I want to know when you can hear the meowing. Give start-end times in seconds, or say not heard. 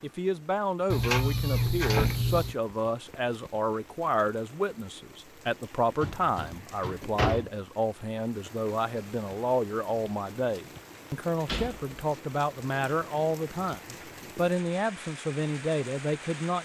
0.9-2.5.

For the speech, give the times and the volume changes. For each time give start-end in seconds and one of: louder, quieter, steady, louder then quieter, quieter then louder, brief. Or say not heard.
0.0-16.6 steady.